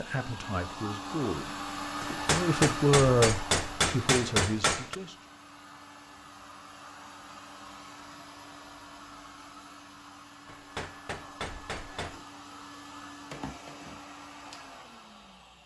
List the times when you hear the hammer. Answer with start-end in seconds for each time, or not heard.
2.0-5.0, 10.4-12.2.